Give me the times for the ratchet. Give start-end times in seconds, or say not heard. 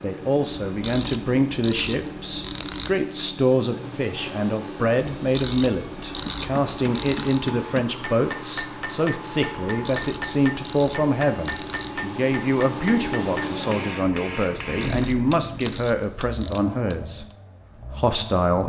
0.7-3.0, 5.2-7.4, 9.8-11.9, 14.7-16.6.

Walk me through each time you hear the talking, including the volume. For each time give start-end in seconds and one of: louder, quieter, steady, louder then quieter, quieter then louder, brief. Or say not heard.
0.0-17.2 steady
17.9-18.6 brief.